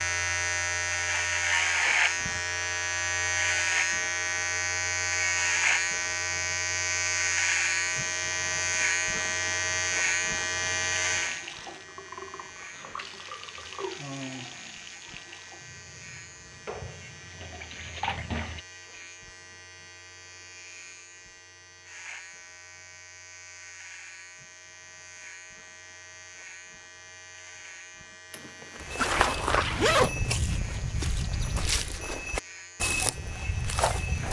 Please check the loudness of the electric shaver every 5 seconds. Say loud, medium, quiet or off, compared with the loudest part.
loud, loud, medium, quiet, quiet, quiet, quiet.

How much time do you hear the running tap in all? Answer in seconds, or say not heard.
8 s.